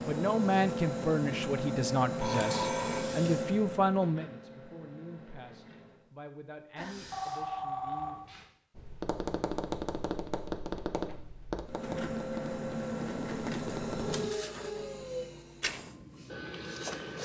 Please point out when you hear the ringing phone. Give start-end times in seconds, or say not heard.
2.2-3.2, 6.8-8.4, 14.1-15.1.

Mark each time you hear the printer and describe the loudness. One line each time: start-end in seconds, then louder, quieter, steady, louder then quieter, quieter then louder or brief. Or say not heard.
0.0-6.1 quieter
11.7-17.2 quieter.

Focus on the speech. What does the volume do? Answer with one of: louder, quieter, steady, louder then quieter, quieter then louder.
quieter.